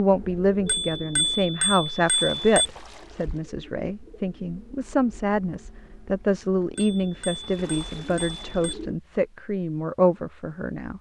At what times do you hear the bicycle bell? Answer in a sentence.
You can hear the bicycle bell from 0.7 to 2.7 s and from 6.8 to 8.8 s.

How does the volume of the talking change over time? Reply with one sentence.
The loudness of the talking stays about the same.